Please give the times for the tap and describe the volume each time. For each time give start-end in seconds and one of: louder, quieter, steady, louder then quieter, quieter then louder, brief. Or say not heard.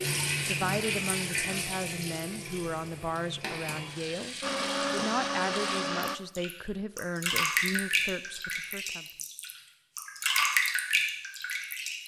0.0-12.0 quieter then louder.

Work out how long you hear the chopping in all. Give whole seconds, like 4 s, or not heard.
not heard.